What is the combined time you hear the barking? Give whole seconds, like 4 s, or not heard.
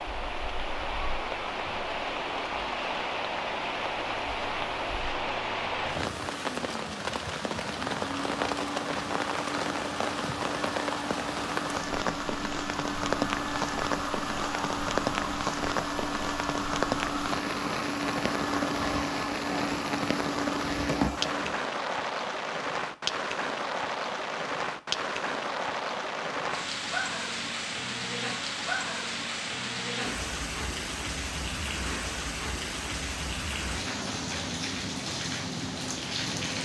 not heard.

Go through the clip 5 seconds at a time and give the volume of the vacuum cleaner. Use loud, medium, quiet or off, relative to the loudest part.
medium, medium, loud, loud, loud, off, off, off.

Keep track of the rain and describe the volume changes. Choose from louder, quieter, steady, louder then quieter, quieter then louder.
steady.